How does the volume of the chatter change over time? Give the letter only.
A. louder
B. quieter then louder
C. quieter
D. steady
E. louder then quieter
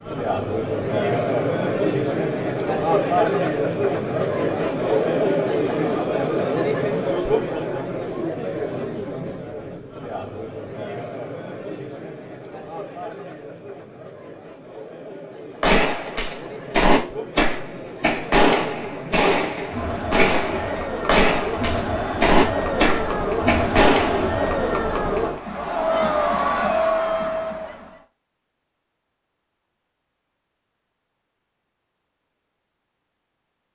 B.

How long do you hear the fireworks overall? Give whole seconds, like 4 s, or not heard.
9 s.